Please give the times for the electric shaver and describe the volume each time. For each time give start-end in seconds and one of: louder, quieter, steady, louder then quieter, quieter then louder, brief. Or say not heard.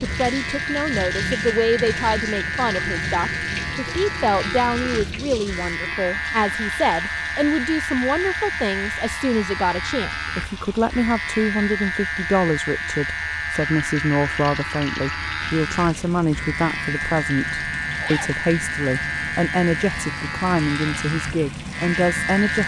0.0-22.6 steady.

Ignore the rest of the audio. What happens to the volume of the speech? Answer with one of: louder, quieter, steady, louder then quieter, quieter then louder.
steady.